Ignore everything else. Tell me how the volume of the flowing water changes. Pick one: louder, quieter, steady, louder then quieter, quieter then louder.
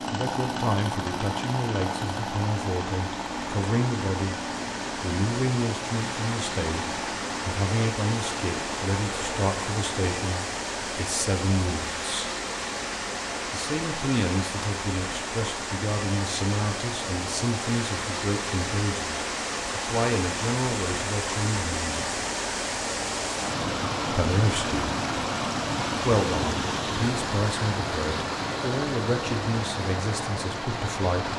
louder.